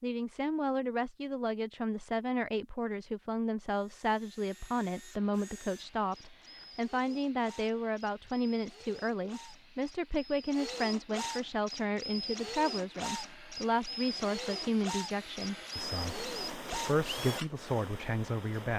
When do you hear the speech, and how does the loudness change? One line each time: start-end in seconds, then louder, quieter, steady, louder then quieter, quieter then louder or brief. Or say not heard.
0.0-18.7 steady.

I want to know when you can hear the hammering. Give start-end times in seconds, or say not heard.
not heard.